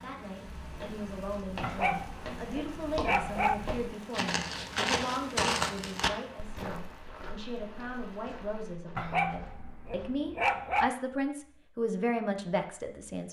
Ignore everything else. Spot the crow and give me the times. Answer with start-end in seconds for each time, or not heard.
not heard.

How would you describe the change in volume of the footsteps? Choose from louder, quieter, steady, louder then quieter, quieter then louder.
louder then quieter.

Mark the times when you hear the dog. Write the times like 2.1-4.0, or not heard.
1.6-3.5, 8.9-10.9.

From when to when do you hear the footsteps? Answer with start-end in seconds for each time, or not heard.
0.4-10.1.